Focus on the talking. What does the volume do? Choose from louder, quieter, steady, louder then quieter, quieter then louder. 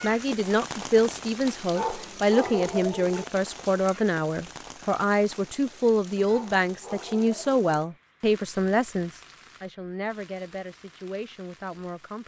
quieter.